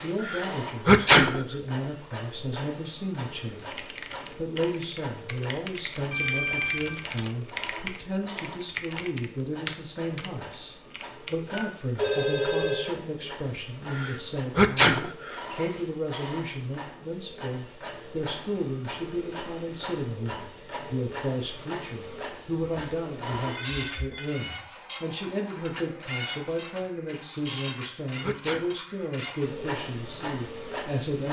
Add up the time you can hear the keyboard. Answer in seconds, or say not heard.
8 s.